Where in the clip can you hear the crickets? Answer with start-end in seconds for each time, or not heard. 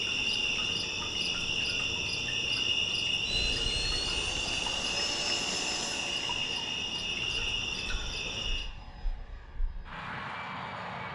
0.0-8.7.